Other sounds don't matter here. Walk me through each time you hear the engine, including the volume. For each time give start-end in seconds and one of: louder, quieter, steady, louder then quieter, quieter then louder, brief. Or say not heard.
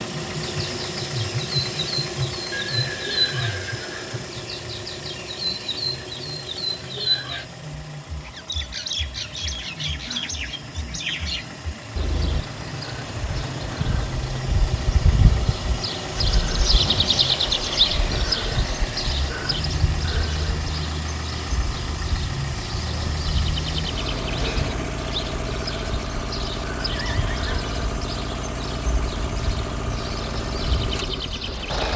0.0-31.9 quieter then louder.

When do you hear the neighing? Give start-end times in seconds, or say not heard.
2.5-4.3, 26.9-27.6.